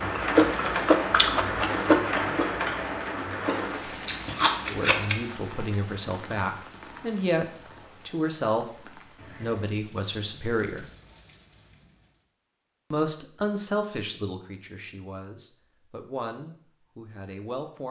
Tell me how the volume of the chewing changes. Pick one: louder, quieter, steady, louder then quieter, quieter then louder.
quieter then louder.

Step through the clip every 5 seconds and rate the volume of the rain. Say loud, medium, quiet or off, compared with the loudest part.
loud, quiet, quiet, off.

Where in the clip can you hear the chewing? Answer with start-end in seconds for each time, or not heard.
0.0-5.2.